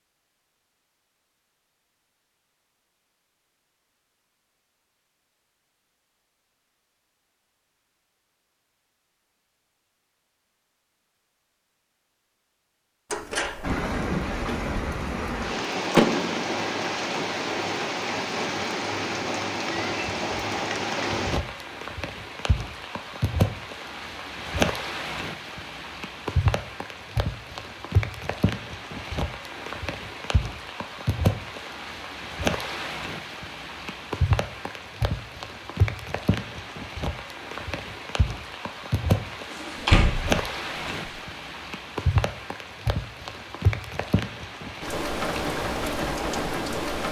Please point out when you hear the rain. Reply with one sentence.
The rain can be heard from 13.6 to 47.0 s.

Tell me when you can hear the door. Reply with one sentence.
The door can be heard from 13.1 to 13.8 s, from 15.9 to 16.8 s and from 39.6 to 41.1 s.